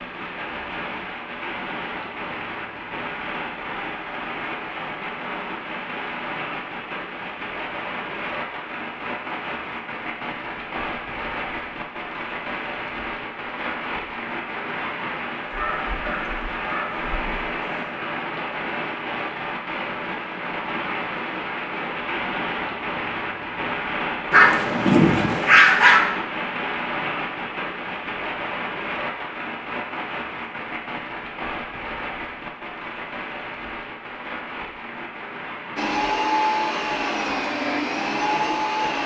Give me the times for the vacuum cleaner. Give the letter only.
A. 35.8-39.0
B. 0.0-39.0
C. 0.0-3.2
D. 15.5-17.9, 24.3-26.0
A.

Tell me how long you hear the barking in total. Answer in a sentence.
The barking can be heard for 4 seconds in total.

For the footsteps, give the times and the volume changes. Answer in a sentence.
The footsteps can't be heard in this clip.